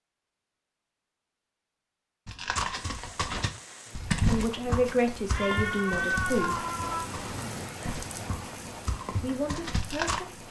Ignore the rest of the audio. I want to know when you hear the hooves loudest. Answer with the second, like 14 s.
4 s.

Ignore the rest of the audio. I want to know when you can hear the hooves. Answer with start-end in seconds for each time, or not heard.
2.2-10.2.